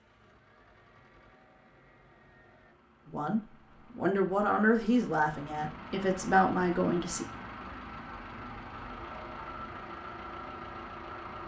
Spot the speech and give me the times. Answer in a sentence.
The speech can be heard from 3.0 to 7.2 s.